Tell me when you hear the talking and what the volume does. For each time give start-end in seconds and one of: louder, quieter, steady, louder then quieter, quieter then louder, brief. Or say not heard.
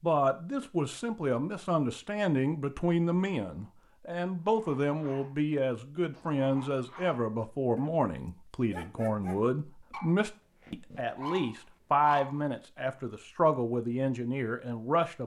0.0-15.2 steady.